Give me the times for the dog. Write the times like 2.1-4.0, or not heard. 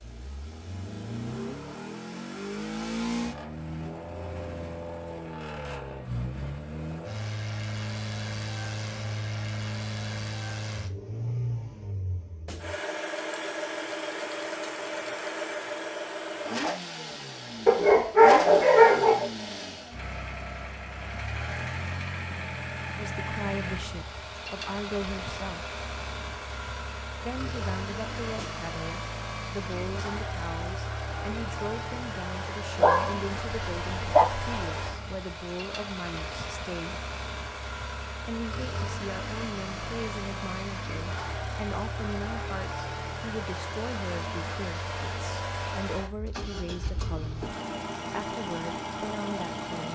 17.6-19.2, 32.8-34.5.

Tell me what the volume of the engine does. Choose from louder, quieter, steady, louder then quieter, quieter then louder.
steady.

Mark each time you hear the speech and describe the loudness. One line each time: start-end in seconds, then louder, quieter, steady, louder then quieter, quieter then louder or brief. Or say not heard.
22.9-25.8 brief
27.2-37.0 steady
38.2-47.5 steady
48.1-49.9 brief.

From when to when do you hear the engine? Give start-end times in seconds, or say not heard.
0.0-49.9.